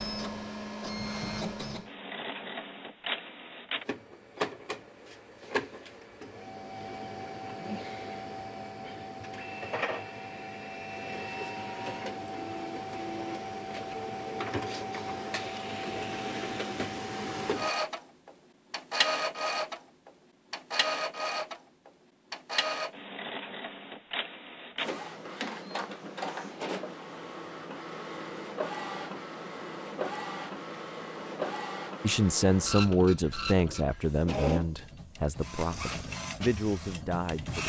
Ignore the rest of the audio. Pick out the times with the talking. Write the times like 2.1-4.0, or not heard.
32.0-37.6.